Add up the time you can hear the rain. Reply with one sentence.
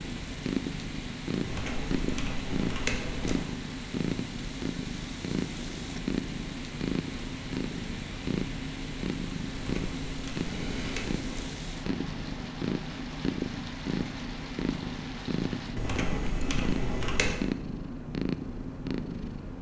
The rain can be heard for 16 seconds in total.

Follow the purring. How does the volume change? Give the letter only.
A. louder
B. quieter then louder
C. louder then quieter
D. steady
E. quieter
D.